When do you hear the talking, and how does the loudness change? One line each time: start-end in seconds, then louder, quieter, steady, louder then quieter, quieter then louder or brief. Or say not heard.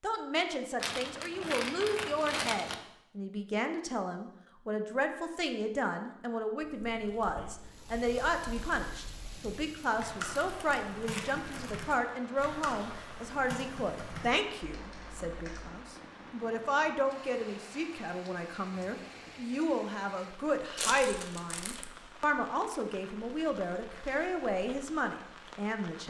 0.0-26.0 steady.